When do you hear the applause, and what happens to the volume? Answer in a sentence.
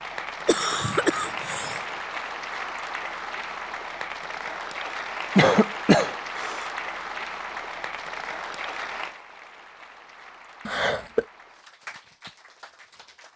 The applause can be heard from 0.0 to 13.3 s, getting quieter.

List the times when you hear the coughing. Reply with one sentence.
You can hear the coughing from 0.5 to 1.8 s, from 5.3 to 6.7 s and from 10.7 to 11.2 s.